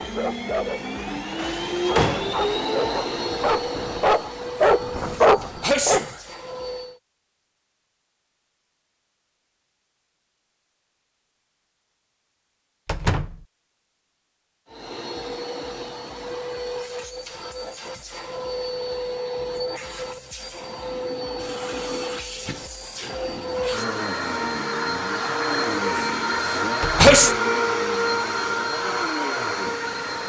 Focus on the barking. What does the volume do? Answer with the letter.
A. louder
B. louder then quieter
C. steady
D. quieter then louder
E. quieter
A.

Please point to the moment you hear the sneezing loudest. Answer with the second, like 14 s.
27 s.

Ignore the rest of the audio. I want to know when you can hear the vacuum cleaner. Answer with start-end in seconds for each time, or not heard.
0.0-7.0, 14.7-30.2.